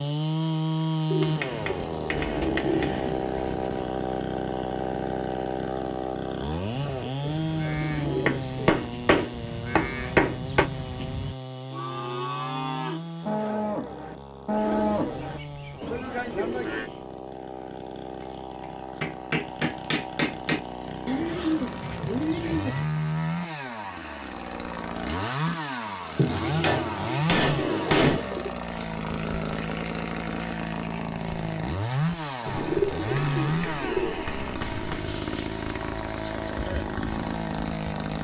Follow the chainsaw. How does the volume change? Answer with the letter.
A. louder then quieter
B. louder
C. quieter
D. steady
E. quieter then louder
E.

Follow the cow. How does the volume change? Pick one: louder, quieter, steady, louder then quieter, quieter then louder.
louder.